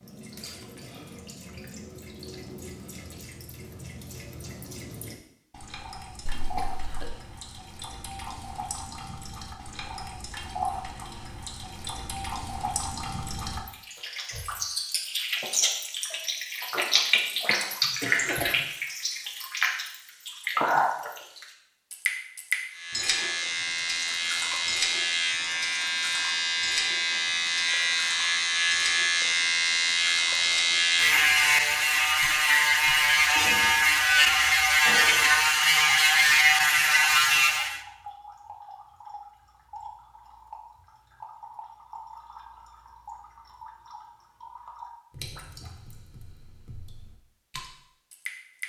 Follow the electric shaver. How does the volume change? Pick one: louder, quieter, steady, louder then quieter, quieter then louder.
louder.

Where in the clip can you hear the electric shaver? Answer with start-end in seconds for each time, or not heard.
22.7-37.8.